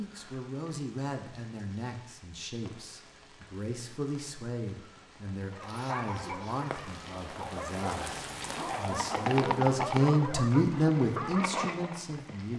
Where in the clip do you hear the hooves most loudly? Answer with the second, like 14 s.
10 s.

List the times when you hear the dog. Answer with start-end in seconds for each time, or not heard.
5.5-11.9.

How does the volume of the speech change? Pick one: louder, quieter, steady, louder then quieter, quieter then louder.
louder.